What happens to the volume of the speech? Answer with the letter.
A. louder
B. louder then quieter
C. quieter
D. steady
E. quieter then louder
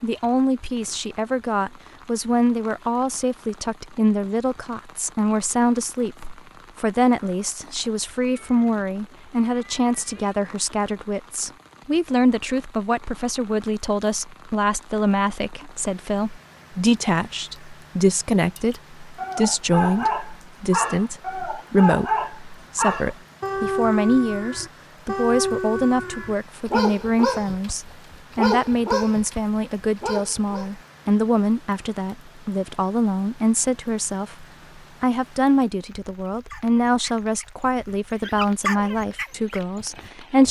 D.